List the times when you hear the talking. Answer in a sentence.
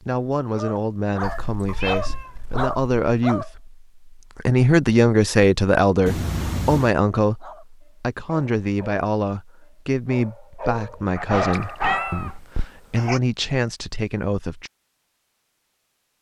The talking can be heard from 0.0 to 14.7 s.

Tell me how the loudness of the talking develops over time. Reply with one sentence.
The volume of the talking goes up, then down.